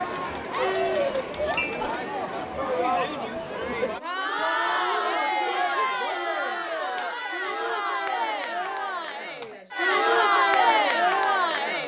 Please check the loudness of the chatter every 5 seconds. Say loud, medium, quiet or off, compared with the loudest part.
medium, medium, loud.